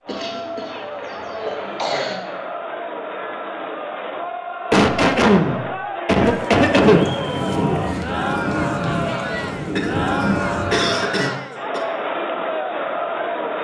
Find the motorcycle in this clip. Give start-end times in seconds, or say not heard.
not heard.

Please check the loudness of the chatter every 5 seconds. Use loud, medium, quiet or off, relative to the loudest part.
medium, loud, loud.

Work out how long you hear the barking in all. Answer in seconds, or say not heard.
not heard.